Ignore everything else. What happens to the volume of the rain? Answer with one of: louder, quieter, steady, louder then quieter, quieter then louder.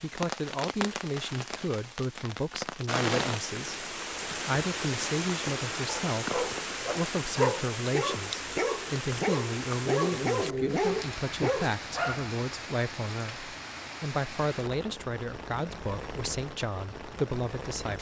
quieter.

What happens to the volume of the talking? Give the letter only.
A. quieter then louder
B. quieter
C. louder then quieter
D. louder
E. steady
E.